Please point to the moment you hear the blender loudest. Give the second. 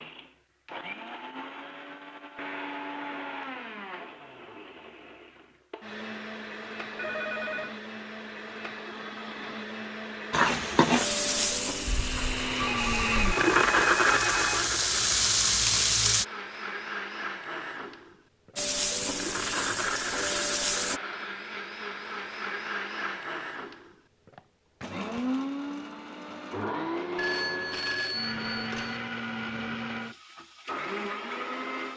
14 s.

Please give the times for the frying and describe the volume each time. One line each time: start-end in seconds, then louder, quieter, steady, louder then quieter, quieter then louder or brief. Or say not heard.
10.3-16.2 quieter then louder
18.6-21.0 brief.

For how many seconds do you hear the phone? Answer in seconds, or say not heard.
5 s.